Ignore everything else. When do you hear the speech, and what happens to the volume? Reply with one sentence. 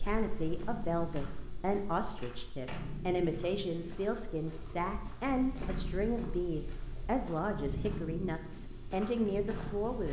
The speech can be heard from 0.0 to 10.0 s, at a steady volume.